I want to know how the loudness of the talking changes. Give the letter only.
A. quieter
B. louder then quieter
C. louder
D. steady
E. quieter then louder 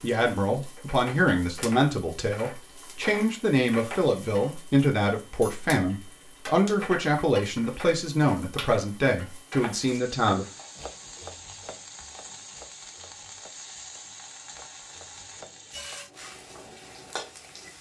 D.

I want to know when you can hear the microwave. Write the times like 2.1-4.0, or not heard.
16.1-17.7.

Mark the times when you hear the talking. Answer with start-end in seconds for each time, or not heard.
0.0-10.4.